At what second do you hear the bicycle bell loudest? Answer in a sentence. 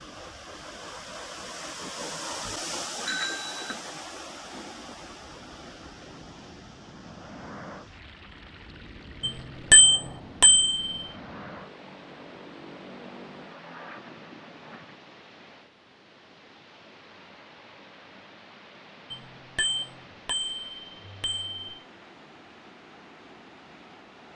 The volume of the bicycle bell peaks at 10 seconds.